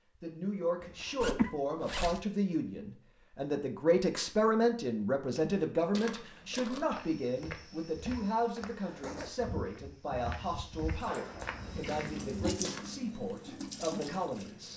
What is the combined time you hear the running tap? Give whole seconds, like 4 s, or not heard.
4 s.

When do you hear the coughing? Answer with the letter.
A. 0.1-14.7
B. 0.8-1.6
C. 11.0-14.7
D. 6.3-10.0
B.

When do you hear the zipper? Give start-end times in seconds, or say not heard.
1.2-2.2, 8.6-9.3.